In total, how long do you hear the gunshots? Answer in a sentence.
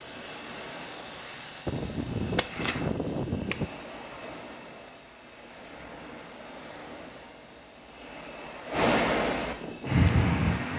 The gunshots can be heard for 2 seconds in total.